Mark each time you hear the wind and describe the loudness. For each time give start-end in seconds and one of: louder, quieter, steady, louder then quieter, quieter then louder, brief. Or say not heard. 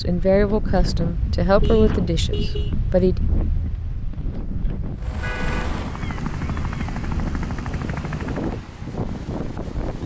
0.0-10.0 quieter then louder.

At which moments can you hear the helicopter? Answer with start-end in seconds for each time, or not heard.
5.0-8.7.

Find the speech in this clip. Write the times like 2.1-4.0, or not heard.
0.0-3.1.